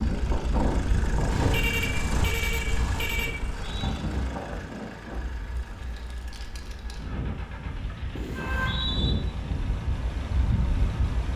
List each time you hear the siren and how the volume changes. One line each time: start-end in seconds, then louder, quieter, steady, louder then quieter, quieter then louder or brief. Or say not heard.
not heard.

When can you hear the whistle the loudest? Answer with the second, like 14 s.
9 s.